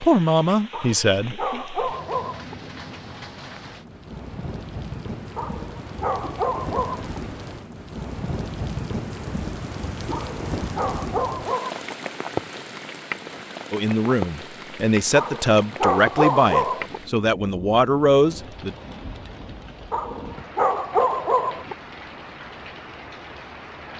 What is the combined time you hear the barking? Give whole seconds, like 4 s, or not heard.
9 s.